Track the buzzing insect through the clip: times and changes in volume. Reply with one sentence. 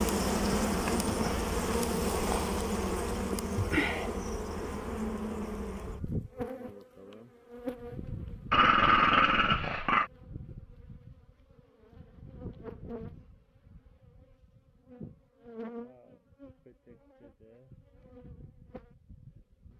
The buzzing insect can be heard from 0.0 to 19.7 s, getting quieter.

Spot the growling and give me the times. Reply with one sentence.
You can hear the growling from 8.5 to 10.1 s.